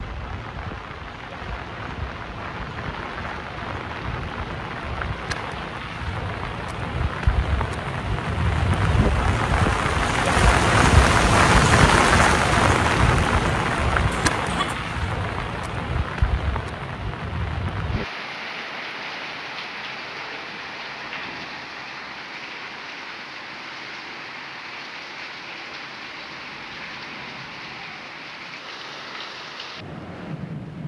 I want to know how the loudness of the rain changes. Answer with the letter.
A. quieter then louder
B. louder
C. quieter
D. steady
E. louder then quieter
E.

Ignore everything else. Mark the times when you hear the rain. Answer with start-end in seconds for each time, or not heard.
0.0-30.8.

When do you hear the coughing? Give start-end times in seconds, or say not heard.
14.1-14.8.